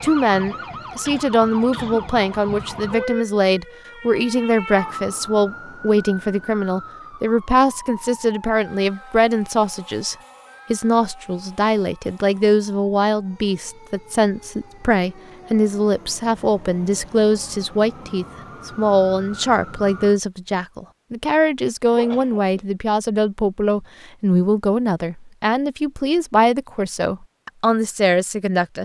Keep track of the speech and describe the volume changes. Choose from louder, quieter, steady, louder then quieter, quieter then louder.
steady.